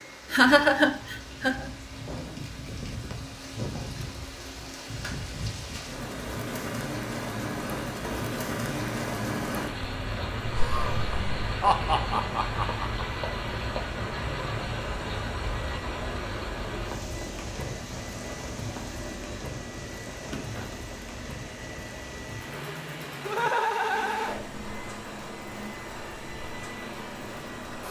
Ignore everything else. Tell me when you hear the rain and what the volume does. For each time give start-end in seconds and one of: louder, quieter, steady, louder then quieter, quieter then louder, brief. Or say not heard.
0.0-27.8 louder then quieter.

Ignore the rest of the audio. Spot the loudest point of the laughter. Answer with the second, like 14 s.
1 s.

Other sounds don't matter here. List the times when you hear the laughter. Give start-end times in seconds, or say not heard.
0.3-1.7, 10.4-13.1, 23.2-24.4.